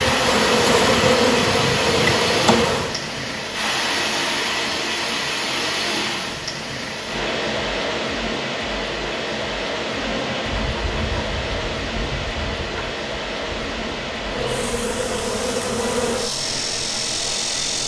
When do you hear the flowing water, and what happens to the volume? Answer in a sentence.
The flowing water can be heard from 0.0 to 17.8 s, getting quieter.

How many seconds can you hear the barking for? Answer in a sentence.
You can't hear the barking here.